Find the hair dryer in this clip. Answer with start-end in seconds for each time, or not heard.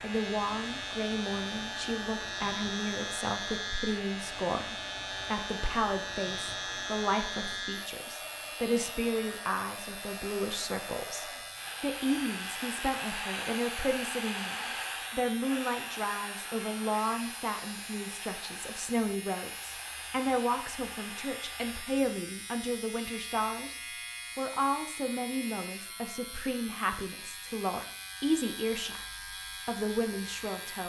0.0-21.9.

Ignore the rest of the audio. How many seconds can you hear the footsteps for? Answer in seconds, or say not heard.
not heard.